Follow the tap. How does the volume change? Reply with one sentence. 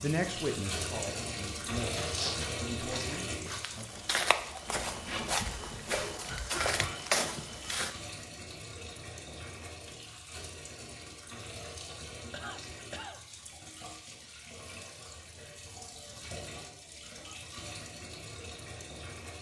The volume of the tap goes down.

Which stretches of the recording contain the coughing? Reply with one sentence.
You can hear the coughing from 6.2 to 7.0 s and from 12.3 to 13.2 s.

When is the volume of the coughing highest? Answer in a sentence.
The volume of the coughing peaks at 7 seconds.